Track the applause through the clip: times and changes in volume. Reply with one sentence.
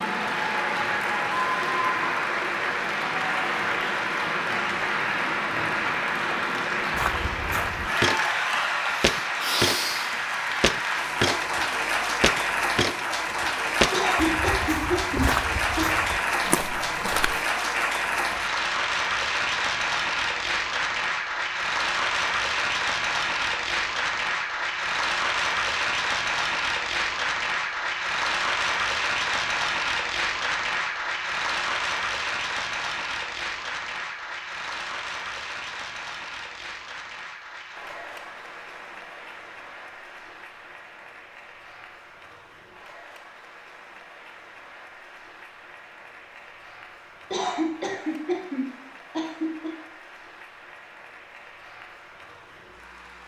The applause can be heard from 0.0 to 53.2 s, getting quieter.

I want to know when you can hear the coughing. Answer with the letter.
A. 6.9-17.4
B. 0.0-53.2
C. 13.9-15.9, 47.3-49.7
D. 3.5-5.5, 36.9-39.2
C.